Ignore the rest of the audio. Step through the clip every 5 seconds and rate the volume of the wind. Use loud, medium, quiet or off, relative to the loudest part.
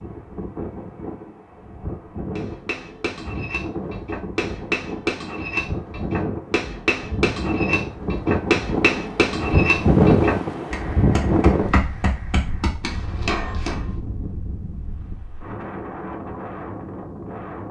medium, loud, loud, medium.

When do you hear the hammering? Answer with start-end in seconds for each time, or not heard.
2.4-13.9.